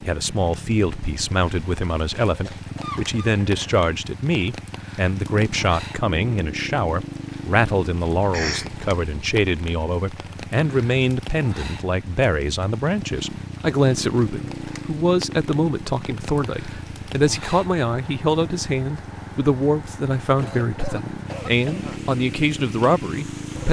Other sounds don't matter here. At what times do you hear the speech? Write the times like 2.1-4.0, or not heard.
0.1-23.6.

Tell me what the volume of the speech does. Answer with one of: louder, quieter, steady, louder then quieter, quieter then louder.
steady.